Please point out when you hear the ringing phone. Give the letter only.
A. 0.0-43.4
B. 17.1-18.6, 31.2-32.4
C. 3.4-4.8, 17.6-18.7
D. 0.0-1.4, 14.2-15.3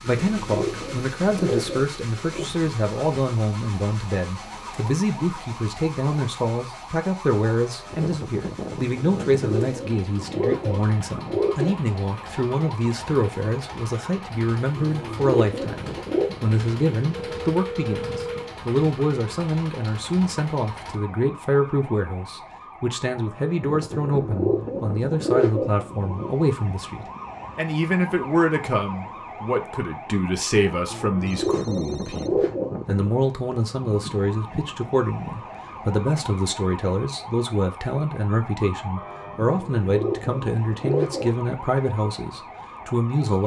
B.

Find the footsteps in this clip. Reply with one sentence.
The footsteps can't be heard in this clip.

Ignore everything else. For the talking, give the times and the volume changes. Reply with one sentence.
The talking can be heard from 0.0 to 43.4 s, at a steady volume.